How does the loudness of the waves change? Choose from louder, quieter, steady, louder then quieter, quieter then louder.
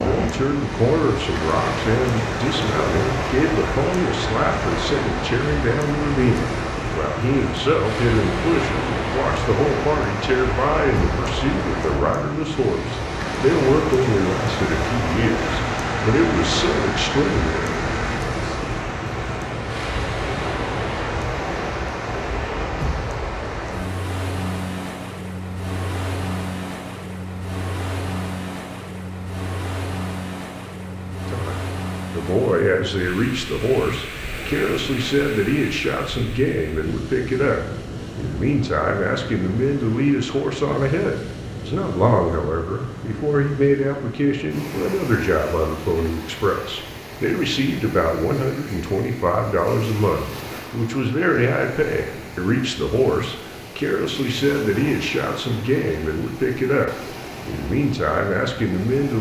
quieter.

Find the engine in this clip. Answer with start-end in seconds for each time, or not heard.
15.3-18.2.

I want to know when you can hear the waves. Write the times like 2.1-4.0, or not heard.
0.0-59.1.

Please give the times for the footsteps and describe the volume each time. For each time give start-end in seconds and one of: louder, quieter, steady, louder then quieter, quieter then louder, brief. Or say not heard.
not heard.